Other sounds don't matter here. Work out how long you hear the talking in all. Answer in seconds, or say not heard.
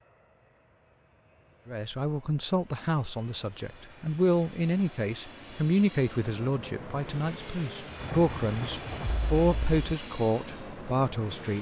10 s.